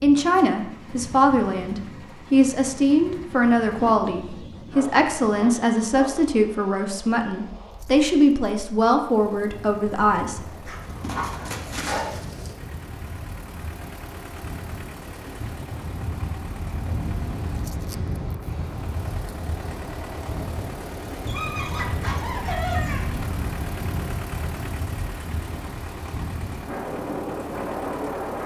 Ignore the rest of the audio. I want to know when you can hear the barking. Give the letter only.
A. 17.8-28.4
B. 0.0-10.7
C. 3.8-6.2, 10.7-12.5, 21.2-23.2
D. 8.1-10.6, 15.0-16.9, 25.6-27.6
C.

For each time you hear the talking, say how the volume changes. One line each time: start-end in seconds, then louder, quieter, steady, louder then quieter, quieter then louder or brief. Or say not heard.
0.0-10.7 steady.